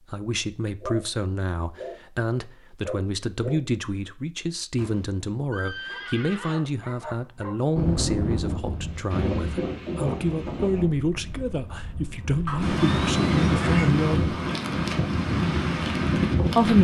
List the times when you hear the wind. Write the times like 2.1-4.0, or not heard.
7.8-16.7.